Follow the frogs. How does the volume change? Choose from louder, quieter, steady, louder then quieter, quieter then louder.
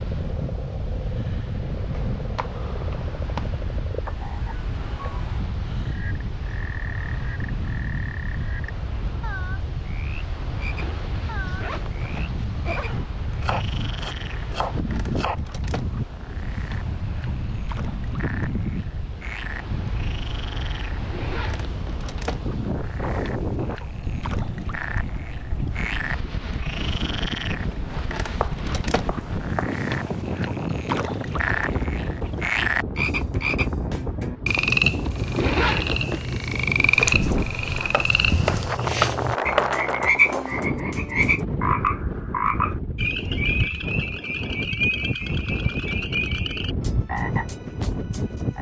louder.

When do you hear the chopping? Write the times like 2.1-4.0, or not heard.
1.9-3.5, 13.4-15.3, 28.4-29.8, 37.9-39.8.